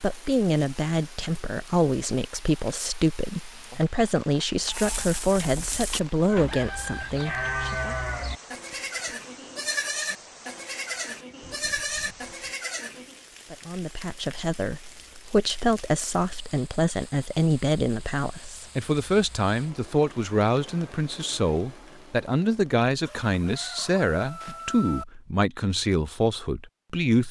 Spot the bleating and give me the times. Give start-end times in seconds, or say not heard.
4.5-13.2.